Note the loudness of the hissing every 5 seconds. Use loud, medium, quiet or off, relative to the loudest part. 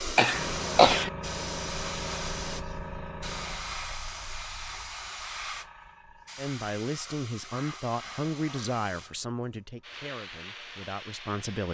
loud, medium, medium.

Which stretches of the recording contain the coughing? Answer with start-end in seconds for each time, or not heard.
0.1-1.1.